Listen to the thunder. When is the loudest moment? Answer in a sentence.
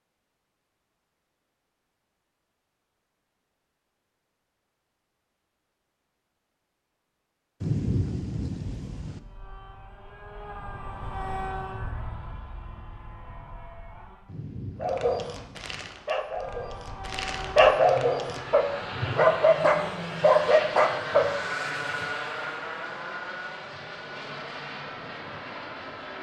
The volume of the thunder peaks at 8 seconds.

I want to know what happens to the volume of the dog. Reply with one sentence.
The volume of the dog goes up.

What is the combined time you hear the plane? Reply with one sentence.
The plane can be heard for 15 seconds in total.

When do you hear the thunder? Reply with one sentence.
The thunder can be heard from 7.6 to 9.2 s and from 14.2 to 15.9 s.